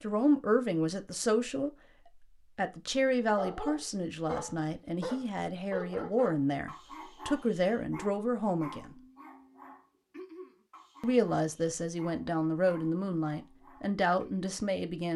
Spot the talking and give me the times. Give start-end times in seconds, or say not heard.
0.0-8.9, 11.0-15.1.